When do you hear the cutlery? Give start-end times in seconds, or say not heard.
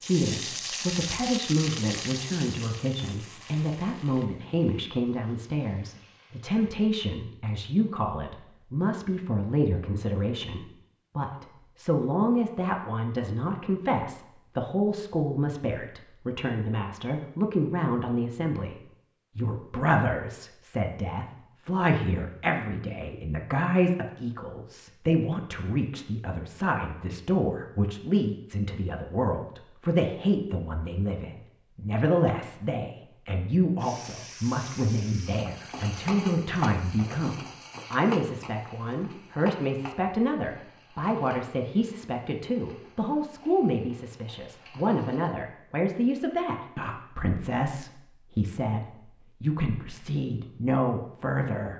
not heard.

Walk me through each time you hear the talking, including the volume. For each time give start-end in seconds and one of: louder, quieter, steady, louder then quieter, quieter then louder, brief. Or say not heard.
0.0-18.8 steady
19.4-51.7 steady.